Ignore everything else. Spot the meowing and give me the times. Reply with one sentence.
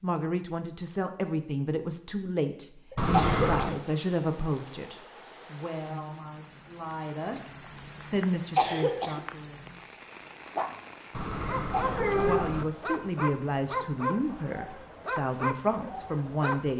The meowing can be heard from 3.0 to 3.8 s and from 11.1 to 12.7 s.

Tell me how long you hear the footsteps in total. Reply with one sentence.
The footsteps can't be heard in this clip.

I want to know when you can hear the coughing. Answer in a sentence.
The coughing can be heard from 2.9 to 3.8 s, from 8.3 to 9.2 s and from 11.6 to 12.2 s.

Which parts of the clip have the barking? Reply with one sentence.
The barking can be heard from 10.6 to 16.6 s.